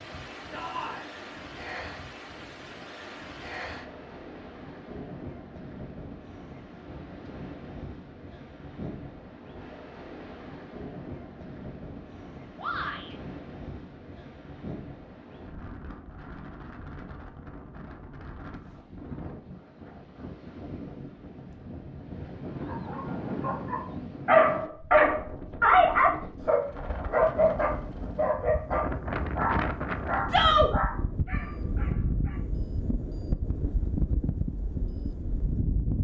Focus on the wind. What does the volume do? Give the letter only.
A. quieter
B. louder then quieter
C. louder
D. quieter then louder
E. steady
C.